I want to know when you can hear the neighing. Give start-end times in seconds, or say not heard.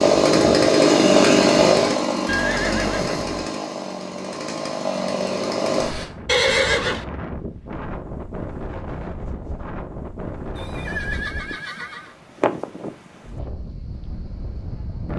2.2-3.5, 6.2-7.0, 10.6-12.2.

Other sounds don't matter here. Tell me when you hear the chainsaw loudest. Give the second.
1 s.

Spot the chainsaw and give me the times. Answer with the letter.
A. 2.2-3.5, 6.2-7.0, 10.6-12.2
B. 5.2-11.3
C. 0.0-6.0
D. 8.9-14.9
C.